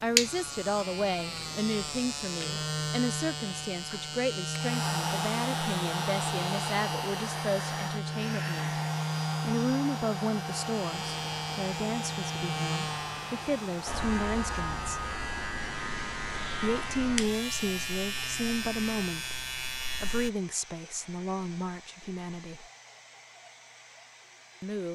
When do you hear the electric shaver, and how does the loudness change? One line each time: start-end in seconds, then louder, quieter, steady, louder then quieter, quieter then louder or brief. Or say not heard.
0.0-20.3 steady.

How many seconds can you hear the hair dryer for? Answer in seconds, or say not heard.
20 s.